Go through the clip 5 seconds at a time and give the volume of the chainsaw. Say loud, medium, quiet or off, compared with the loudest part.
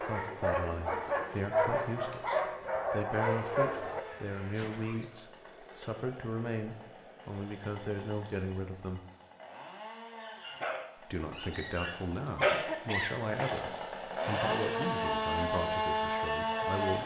quiet, quiet, medium, loud.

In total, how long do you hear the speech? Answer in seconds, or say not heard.
15 s.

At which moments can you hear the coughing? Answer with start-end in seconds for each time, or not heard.
12.3-13.7.